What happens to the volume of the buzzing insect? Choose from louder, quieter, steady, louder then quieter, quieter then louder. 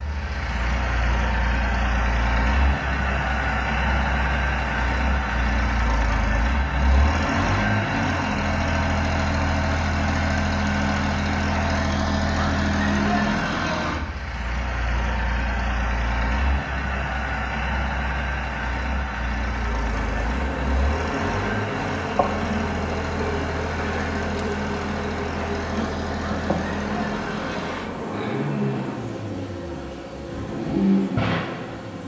steady.